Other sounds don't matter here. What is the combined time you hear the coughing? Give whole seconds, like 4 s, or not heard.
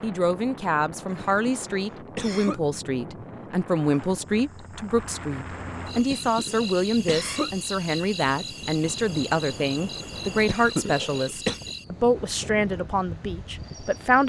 4 s.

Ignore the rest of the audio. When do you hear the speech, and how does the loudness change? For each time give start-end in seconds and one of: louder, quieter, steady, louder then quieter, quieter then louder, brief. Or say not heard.
0.0-14.2 steady.